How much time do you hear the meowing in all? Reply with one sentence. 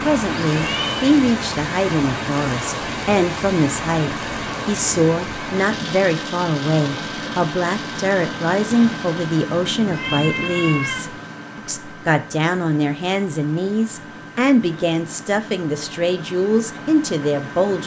The meowing can be heard for 2 seconds in total.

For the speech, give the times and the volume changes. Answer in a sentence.
The speech can be heard from 0.1 to 17.8 s, at a steady volume.